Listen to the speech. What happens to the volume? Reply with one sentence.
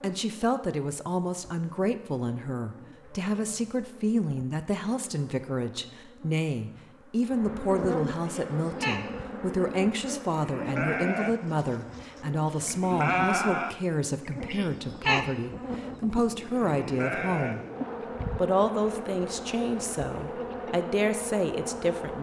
The loudness of the speech stays about the same.